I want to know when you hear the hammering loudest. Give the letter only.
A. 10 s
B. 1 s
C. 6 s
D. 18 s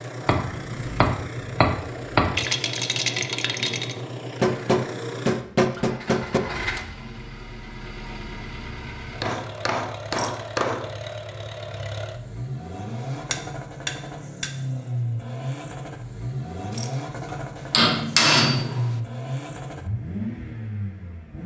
D.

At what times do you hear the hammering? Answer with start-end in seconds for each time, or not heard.
0.2-2.4, 4.4-6.4, 9.2-10.9, 13.3-14.6, 17.7-18.9.